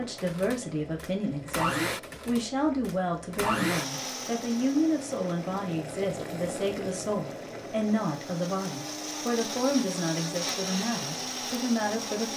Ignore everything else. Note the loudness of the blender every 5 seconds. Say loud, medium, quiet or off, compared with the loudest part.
loud, medium, loud.